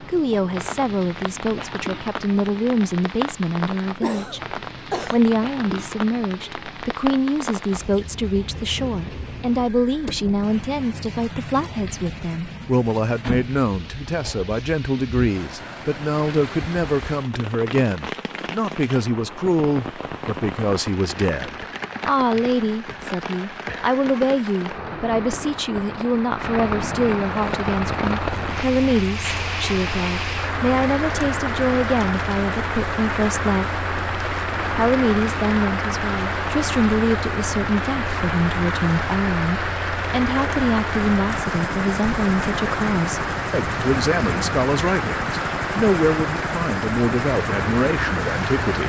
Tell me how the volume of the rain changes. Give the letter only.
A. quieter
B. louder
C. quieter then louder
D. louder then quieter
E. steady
B.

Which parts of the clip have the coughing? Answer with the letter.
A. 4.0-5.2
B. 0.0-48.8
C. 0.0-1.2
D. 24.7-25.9
A.